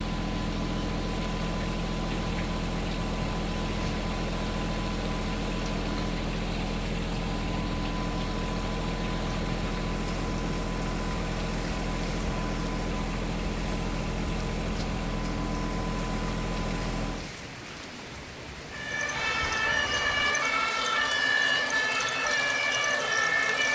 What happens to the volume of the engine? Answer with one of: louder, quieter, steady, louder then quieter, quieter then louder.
steady.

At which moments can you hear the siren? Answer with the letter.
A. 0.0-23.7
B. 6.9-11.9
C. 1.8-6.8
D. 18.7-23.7
D.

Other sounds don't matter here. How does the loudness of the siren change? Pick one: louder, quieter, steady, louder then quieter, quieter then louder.
steady.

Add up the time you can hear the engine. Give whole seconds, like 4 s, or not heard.
17 s.